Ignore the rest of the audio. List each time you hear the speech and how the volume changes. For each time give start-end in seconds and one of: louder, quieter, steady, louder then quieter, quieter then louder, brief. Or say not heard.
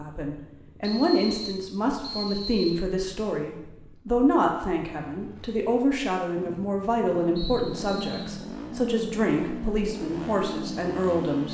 0.0-11.4 steady.